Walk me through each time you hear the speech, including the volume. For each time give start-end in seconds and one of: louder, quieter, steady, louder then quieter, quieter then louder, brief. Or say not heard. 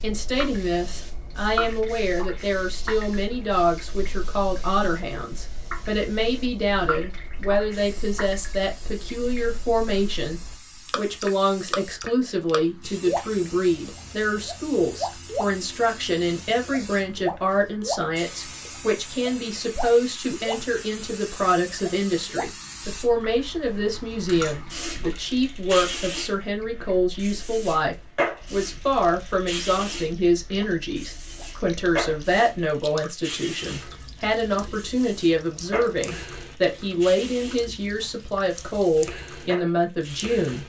0.0-40.6 steady.